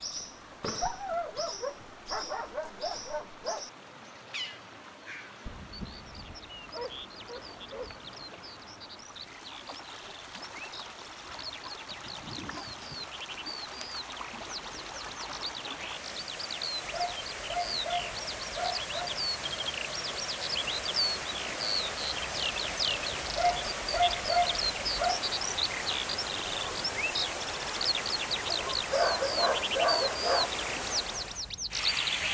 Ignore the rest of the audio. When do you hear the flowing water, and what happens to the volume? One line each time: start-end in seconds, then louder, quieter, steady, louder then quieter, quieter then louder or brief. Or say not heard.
0.0-32.2 louder.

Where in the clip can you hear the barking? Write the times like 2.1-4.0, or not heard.
0.8-3.6, 5.5-8.0, 11.2-13.1, 16.8-18.9, 23.2-25.2, 28.4-30.5.